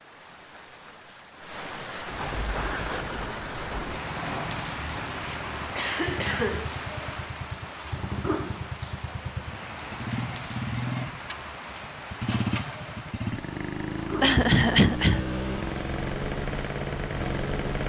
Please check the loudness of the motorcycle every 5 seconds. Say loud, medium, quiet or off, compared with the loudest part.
medium, medium, loud, loud.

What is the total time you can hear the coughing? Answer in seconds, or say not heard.
3 s.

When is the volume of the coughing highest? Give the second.
15 s.